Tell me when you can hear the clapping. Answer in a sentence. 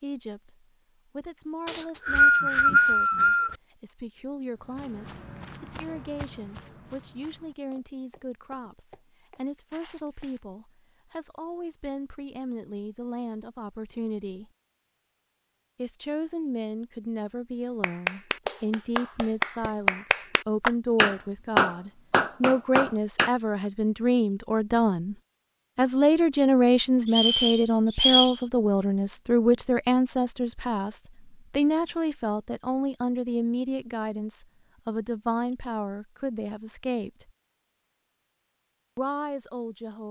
You can hear the clapping from 17.8 to 23.3 s.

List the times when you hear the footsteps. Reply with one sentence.
You can hear the footsteps from 4.6 to 10.4 s.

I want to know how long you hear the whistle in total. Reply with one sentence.
The whistle can be heard for 3 seconds in total.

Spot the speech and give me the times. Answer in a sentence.
You can hear the speech from 0.0 to 14.5 s, from 15.8 to 25.1 s, from 25.8 to 37.3 s and from 39.0 to 40.0 s.